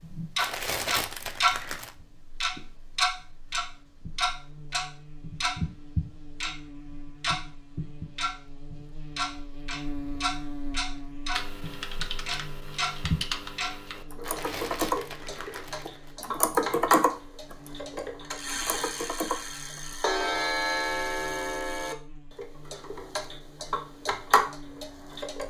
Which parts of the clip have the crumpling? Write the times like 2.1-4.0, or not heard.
0.3-1.9, 14.2-16.1.